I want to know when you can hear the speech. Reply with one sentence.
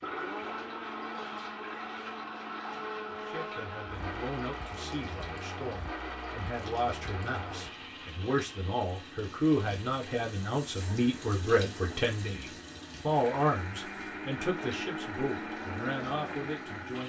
You can hear the speech from 3.1 to 17.0 s.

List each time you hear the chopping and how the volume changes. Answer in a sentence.
You can't hear the chopping here.